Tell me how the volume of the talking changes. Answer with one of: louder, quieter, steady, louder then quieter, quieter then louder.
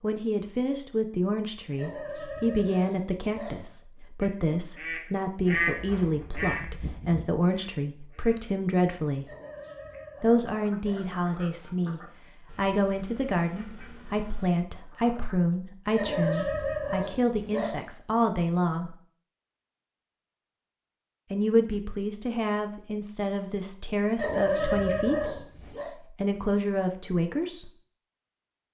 steady.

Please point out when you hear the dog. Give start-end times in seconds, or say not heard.
1.8-3.6, 9.2-11.2, 15.9-17.9, 24.1-25.9.